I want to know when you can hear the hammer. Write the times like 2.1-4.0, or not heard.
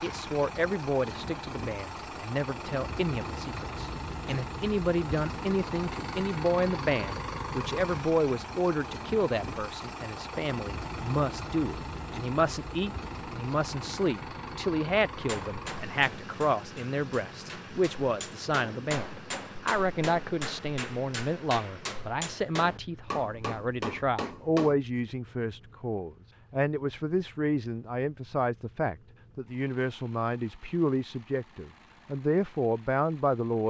15.2-24.8.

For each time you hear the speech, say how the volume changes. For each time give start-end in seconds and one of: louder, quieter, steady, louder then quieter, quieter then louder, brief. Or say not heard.
0.0-33.6 steady.